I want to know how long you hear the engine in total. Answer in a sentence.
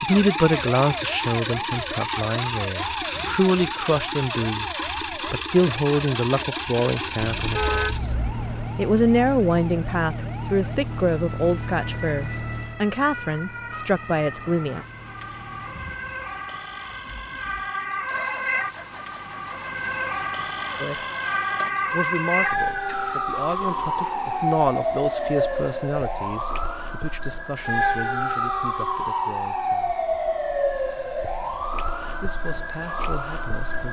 You can hear the engine for 26 seconds altogether.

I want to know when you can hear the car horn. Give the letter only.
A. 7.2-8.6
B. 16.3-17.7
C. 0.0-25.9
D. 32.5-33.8
A.